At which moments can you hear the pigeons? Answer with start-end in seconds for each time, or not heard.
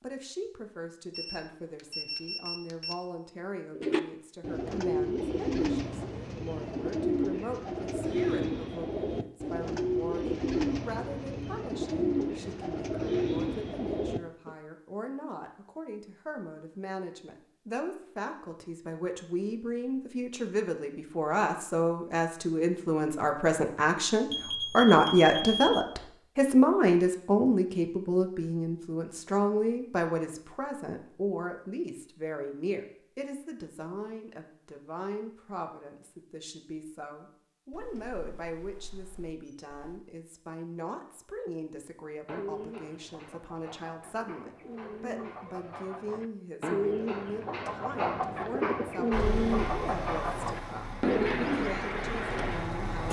3.8-14.6, 42.2-52.8.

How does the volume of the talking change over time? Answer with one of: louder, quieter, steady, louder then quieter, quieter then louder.
louder then quieter.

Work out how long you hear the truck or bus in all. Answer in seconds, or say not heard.
4 s.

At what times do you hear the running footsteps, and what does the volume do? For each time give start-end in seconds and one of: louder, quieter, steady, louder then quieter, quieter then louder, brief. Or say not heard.
not heard.